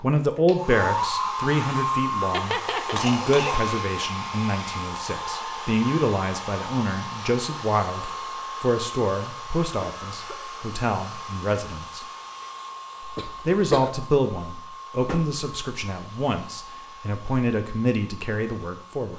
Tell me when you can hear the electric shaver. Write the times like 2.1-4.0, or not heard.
not heard.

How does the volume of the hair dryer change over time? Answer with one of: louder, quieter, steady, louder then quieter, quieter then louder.
quieter.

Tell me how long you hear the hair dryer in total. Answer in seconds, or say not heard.
19 s.